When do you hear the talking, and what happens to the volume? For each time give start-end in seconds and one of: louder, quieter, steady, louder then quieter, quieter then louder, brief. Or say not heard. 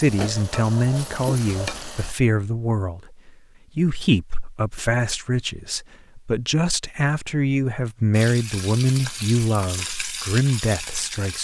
0.0-11.3 steady.